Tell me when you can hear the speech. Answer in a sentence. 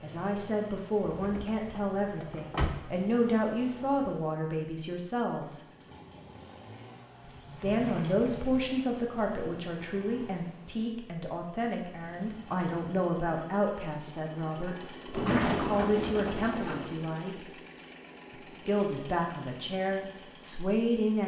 You can hear the speech from 0.0 to 5.7 s, from 7.5 to 17.6 s and from 18.4 to 21.2 s.